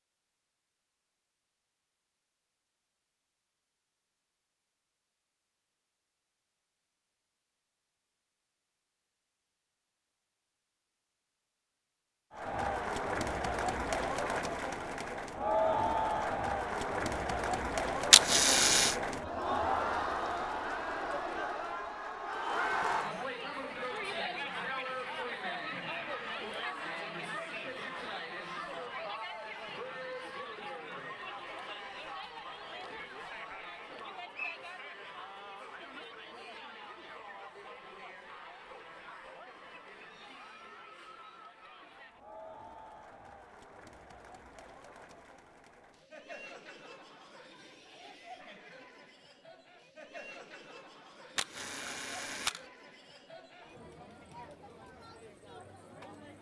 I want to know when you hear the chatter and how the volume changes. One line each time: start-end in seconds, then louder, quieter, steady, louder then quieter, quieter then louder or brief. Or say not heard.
12.3-56.3 quieter.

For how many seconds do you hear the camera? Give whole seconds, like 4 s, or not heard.
2 s.